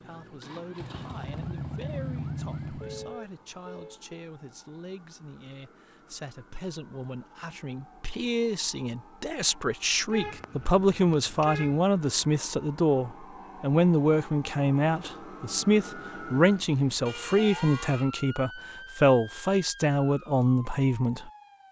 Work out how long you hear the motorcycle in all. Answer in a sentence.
You can hear the motorcycle for 3 seconds altogether.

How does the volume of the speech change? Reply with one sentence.
The loudness of the speech goes up.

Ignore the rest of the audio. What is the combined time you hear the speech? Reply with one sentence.
You can hear the speech for 21 seconds altogether.